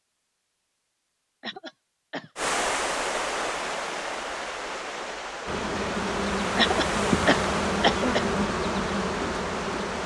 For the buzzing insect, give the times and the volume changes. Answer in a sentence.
The buzzing insect can be heard from 5.5 to 10.0 s, at a steady volume.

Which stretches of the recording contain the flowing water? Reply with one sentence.
The flowing water can be heard from 2.4 to 10.0 s.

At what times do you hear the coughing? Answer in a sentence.
You can hear the coughing from 1.4 to 2.3 s and from 6.5 to 8.2 s.